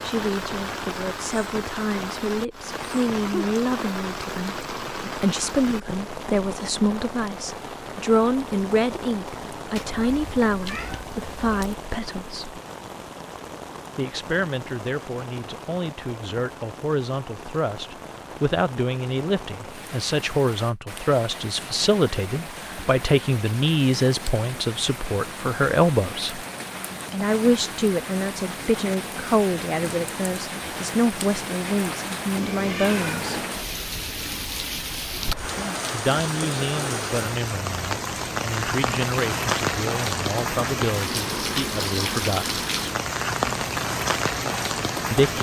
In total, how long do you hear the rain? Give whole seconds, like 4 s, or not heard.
45 s.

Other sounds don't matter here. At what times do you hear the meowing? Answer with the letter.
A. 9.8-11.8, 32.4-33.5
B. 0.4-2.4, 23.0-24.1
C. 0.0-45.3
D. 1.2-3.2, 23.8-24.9
A.